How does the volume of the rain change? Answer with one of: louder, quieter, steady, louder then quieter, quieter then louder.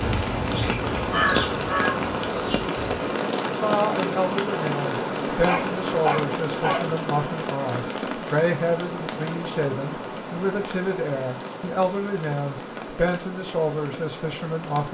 quieter.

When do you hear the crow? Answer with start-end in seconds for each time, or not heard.
0.0-2.8.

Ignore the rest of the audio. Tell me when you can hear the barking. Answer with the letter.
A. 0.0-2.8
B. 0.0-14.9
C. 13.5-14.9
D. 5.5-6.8
D.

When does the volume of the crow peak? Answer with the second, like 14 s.
1 s.